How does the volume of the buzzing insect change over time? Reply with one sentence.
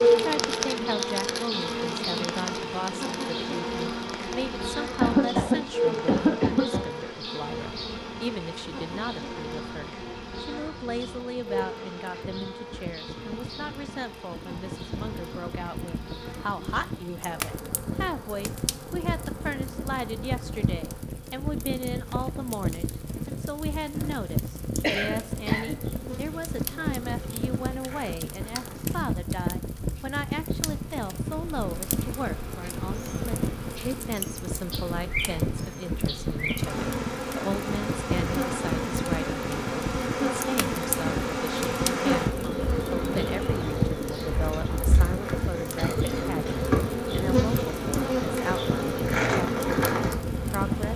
The loudness of the buzzing insect goes down, then up.